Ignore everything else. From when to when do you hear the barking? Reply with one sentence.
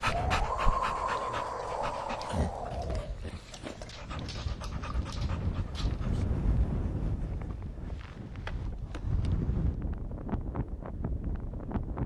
You can hear the barking from 0.0 to 6.2 s.